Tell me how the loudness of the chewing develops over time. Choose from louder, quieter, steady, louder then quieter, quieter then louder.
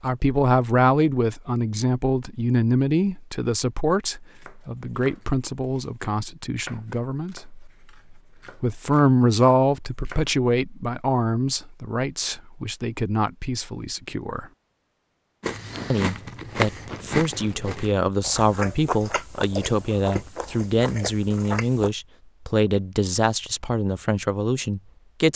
quieter.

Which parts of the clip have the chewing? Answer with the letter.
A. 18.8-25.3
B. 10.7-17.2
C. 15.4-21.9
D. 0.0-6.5
C.